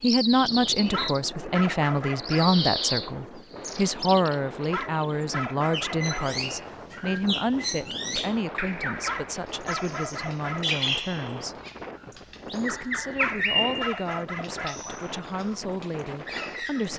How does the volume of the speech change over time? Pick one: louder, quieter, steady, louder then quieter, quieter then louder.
quieter.